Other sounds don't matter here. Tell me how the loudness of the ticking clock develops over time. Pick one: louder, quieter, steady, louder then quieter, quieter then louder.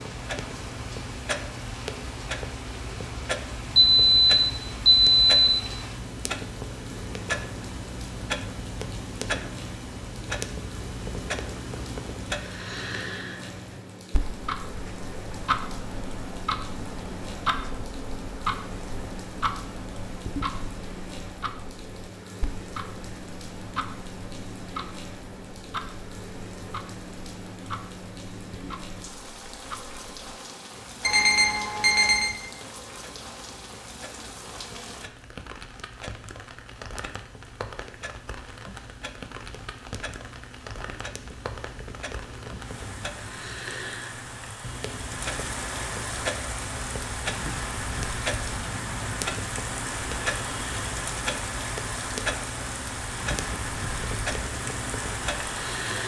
quieter then louder.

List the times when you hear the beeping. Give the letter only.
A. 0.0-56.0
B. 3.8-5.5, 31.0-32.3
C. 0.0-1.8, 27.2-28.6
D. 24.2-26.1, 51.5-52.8
B.